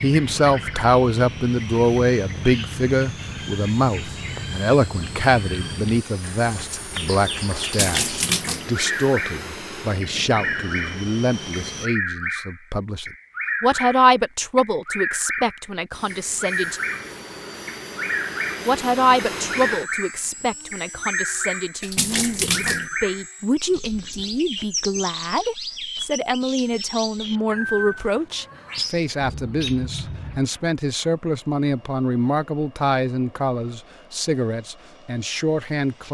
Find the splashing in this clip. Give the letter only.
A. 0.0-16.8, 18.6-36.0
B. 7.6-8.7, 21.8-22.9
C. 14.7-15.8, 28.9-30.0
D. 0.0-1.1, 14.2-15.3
B.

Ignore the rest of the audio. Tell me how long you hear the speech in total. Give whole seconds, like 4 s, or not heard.
34 s.